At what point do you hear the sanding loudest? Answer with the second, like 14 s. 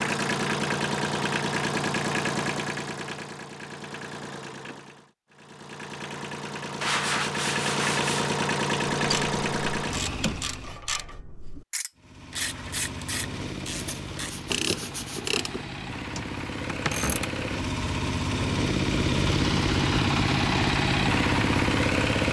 7 s.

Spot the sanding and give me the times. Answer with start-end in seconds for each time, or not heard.
6.8-8.3, 13.8-15.3.